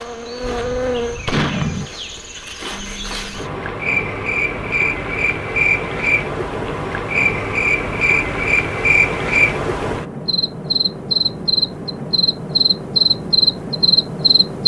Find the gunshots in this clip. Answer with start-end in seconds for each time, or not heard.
0.4-1.9.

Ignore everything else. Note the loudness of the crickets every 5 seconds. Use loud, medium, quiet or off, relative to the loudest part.
medium, loud, loud.